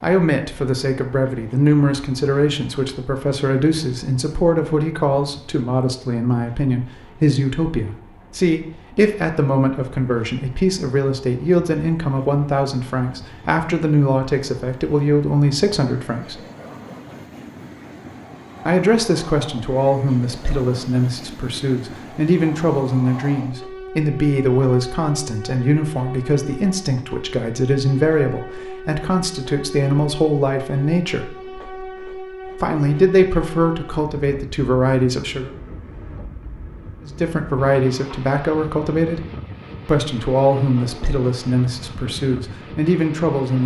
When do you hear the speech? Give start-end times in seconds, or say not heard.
0.0-16.4, 18.6-31.3, 32.6-35.5, 37.0-39.2, 39.9-43.6.